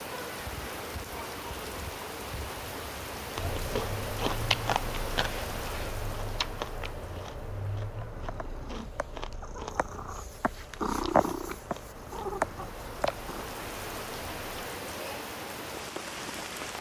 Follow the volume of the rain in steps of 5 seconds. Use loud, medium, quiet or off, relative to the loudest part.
loud, medium, loud, loud.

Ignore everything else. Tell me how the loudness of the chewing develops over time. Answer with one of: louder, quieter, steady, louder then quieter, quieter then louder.
quieter.